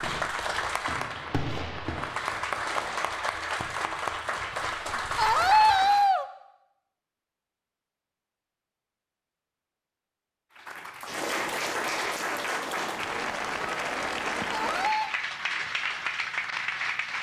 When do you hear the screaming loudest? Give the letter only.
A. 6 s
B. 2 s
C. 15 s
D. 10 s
A.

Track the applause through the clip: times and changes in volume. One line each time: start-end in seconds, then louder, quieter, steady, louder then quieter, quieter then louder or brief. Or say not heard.
0.0-6.2 steady
10.6-17.1 steady.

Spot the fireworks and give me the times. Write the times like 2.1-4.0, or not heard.
0.0-3.0.